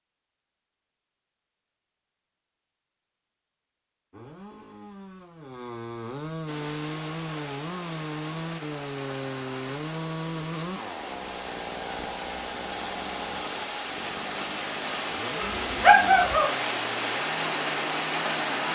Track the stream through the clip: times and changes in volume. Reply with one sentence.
The stream can be heard from 6.5 to 18.7 s, getting louder.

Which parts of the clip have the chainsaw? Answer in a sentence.
The chainsaw can be heard from 4.1 to 18.7 s.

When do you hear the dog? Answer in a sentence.
The dog can be heard from 15.4 to 16.4 s.